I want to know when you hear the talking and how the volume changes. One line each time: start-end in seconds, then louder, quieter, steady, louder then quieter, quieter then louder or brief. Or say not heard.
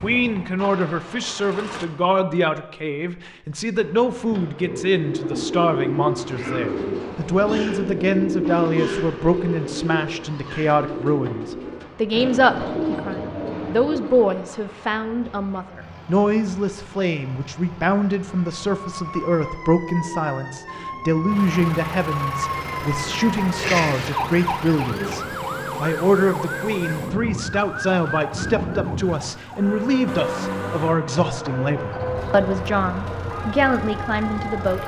0.0-34.8 steady.